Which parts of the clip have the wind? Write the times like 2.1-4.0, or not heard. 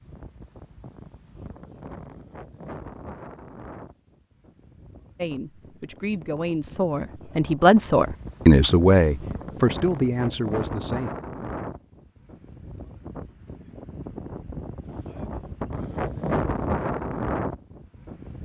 0.0-18.4.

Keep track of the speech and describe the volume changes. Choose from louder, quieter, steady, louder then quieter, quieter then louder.
louder then quieter.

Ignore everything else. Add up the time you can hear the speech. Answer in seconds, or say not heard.
6 s.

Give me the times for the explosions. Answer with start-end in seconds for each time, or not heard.
not heard.